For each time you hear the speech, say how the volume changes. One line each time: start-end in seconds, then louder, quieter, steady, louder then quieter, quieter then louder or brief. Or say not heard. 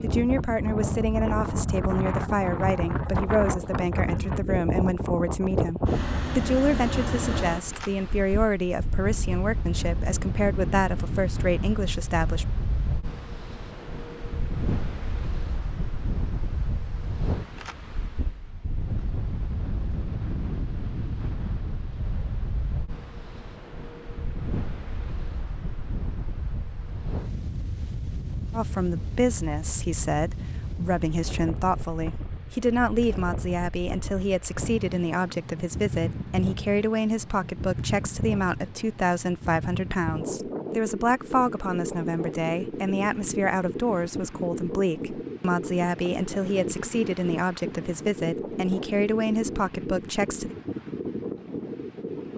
0.0-12.4 steady
28.5-50.5 steady.